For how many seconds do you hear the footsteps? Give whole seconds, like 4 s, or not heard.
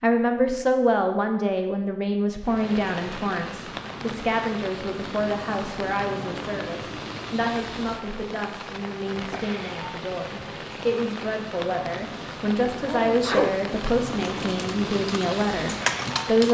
not heard.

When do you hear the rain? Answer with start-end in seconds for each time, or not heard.
2.4-16.4.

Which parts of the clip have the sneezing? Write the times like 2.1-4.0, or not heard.
12.8-13.6.